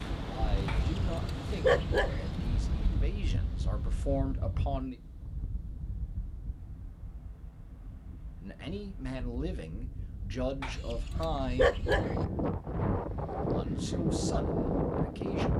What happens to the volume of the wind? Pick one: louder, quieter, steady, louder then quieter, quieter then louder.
quieter then louder.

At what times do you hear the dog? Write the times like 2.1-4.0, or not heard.
0.7-2.2, 10.6-12.2.